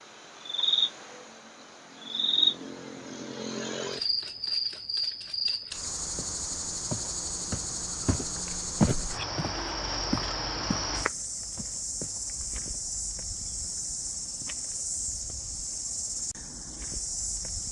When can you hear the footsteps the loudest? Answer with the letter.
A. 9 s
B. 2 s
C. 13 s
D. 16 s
A.